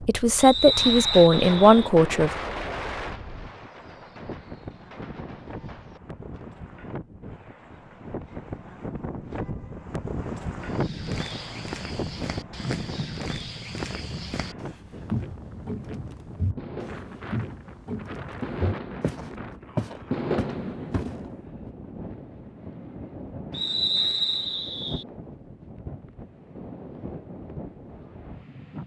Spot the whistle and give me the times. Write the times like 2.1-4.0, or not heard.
0.3-1.9, 23.5-25.1.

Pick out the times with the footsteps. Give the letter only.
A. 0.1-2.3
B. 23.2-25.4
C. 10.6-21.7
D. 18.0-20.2
C.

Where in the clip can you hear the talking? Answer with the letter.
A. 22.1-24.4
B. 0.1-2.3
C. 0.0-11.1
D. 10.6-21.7
B.